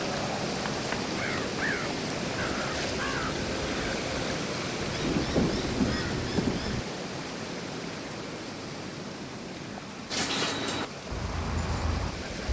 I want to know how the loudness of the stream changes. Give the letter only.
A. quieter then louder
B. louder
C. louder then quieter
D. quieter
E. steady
D.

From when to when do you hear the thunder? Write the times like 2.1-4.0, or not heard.
5.0-6.6.